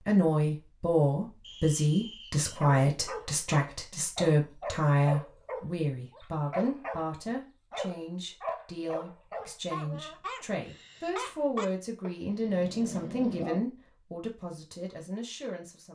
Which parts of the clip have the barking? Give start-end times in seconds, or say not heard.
2.9-13.6.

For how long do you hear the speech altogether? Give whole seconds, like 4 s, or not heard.
16 s.